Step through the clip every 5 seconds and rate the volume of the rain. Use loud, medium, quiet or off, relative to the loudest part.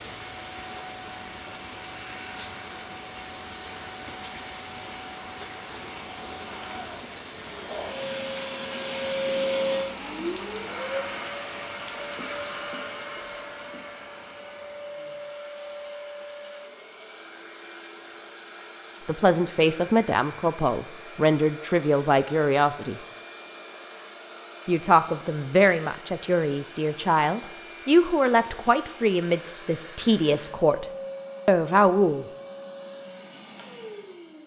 loud, loud, loud, quiet, off, off, off.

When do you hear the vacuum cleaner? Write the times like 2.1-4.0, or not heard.
0.0-34.4.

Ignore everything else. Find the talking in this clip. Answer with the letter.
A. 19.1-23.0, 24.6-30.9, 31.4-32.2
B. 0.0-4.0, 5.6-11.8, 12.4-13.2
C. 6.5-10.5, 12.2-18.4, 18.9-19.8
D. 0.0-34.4
A.